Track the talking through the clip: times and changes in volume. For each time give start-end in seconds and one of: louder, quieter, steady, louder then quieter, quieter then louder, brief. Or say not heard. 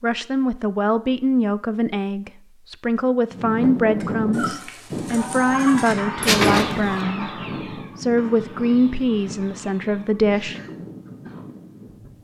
0.0-10.6 steady.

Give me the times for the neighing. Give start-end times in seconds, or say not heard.
6.2-7.0.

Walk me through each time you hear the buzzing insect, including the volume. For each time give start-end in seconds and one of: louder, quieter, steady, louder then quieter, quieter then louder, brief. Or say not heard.
not heard.